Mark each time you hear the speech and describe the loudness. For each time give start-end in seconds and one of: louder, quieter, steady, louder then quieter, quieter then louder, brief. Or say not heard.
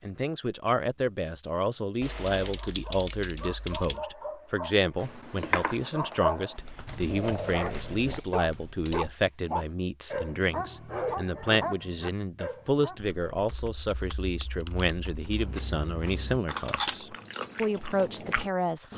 0.0-18.9 steady.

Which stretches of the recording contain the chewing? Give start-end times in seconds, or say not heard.
5.0-6.9, 15.2-18.9.